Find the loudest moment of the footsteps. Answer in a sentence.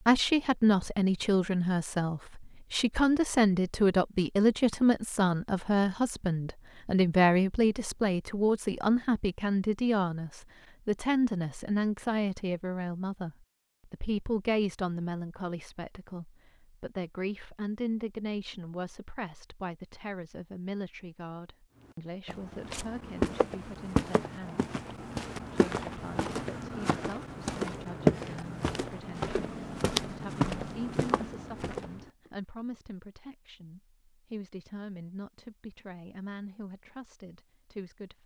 The volume of the footsteps peaks at 28 seconds.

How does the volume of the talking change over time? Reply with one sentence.
The loudness of the talking goes down.